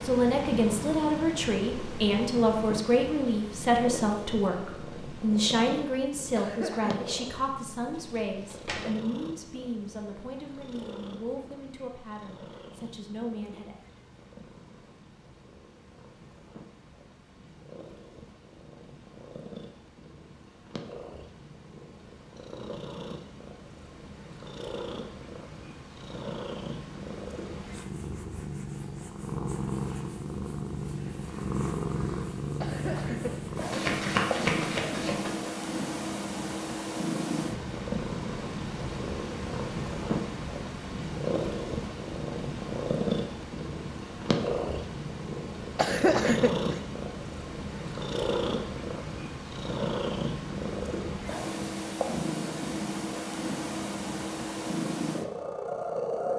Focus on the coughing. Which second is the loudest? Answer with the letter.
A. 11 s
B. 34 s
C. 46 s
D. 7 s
C.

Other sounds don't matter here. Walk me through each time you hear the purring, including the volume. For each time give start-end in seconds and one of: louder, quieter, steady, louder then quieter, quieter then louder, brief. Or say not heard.
0.0-56.3 quieter then louder.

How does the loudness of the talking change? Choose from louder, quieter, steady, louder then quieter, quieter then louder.
quieter.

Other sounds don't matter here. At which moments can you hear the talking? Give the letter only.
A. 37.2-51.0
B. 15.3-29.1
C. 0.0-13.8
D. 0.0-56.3
C.